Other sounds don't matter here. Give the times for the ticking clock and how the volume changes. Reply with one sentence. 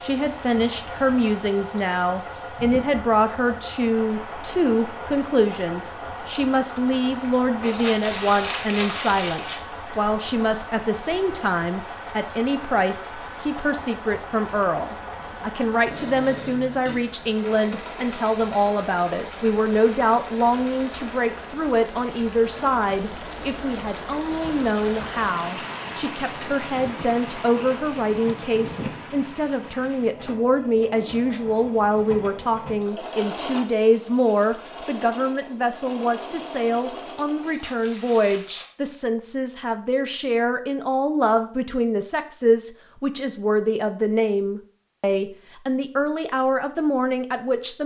You can't hear the ticking clock here.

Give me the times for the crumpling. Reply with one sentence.
You can hear the crumpling from 7.6 to 9.6 s and from 37.4 to 38.8 s.